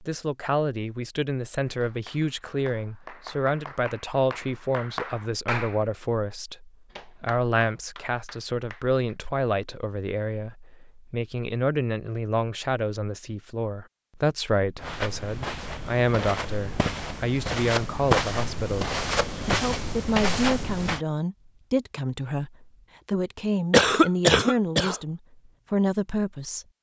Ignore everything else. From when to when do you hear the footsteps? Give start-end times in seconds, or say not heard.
14.8-21.0.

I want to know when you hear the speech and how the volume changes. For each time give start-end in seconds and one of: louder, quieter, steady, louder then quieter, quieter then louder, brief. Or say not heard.
0.0-26.6 steady.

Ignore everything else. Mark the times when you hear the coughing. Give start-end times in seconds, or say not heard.
23.7-24.9.